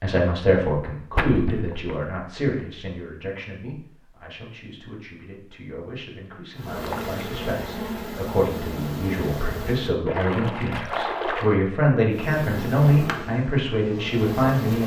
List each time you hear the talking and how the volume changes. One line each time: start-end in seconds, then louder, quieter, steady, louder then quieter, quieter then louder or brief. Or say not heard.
0.0-14.8 quieter then louder.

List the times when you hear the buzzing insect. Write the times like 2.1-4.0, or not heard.
6.5-9.9, 12.1-14.8.